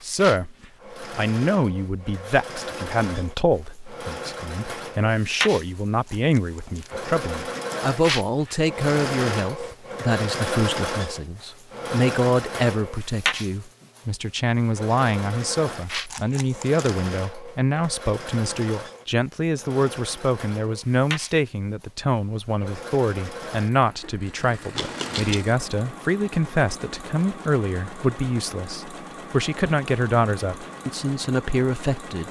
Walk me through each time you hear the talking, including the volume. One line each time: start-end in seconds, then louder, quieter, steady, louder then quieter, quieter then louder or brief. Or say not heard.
0.0-32.2 steady.